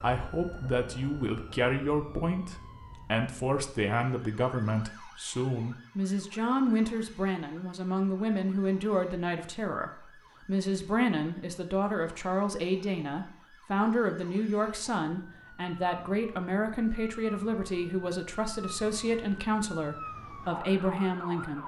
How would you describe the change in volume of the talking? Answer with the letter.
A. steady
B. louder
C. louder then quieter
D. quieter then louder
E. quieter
A.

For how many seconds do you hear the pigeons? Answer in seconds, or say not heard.
not heard.